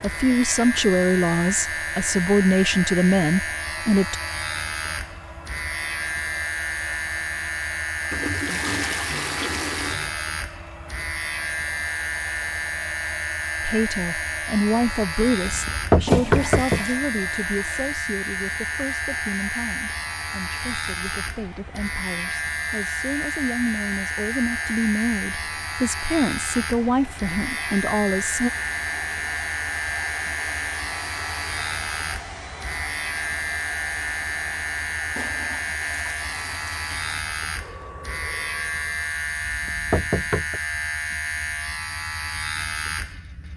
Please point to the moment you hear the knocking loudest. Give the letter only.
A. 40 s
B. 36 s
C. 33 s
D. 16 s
D.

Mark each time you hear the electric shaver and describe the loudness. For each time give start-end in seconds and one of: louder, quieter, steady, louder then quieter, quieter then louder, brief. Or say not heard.
0.0-43.5 steady.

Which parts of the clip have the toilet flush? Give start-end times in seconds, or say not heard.
8.1-10.1, 16.1-17.0, 35.1-37.0.